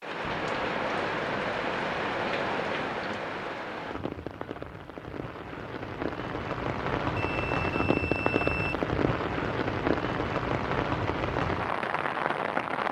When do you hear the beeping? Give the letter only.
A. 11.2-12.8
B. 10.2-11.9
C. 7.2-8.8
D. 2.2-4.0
C.